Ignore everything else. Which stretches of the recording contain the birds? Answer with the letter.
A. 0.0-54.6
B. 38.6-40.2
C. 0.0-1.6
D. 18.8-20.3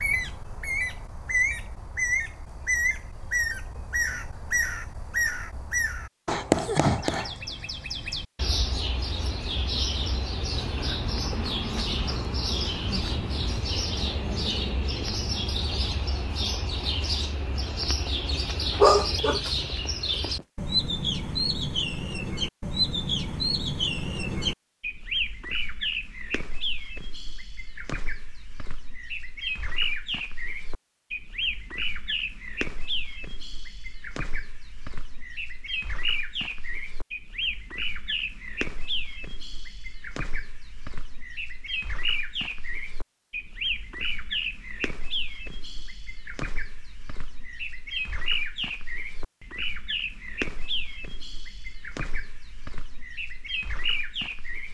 A.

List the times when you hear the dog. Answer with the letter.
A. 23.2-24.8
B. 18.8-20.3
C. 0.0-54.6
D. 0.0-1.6
B.